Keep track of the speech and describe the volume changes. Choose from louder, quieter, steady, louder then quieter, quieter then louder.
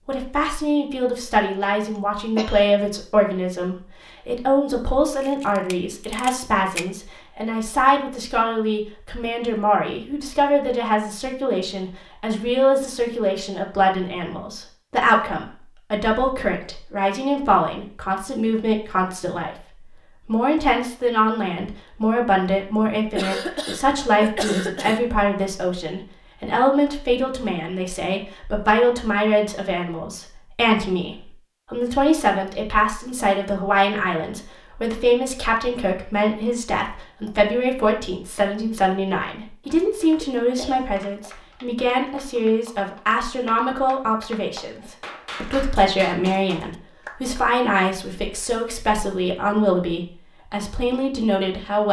steady.